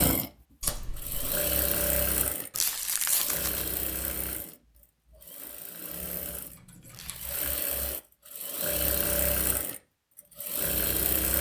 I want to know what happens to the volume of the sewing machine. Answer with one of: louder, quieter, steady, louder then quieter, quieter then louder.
quieter then louder.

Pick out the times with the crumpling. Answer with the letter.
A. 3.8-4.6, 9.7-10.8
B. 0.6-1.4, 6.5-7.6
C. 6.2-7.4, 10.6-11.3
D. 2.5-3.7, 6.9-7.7
D.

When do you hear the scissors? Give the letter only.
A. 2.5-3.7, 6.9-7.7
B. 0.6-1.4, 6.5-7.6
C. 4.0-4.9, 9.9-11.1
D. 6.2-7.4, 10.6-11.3
B.